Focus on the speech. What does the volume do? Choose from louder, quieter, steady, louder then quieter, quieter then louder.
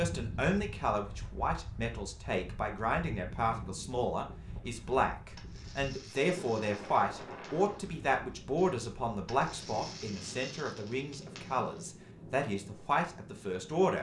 steady.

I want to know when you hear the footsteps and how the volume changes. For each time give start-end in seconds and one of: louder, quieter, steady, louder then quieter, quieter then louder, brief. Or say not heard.
not heard.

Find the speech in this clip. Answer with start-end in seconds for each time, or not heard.
0.0-13.9.